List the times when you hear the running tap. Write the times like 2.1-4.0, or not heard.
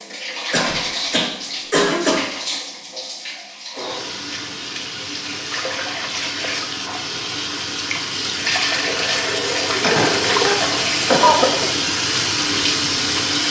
0.0-13.4.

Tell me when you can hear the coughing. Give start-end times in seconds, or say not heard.
0.5-2.3, 9.8-11.5.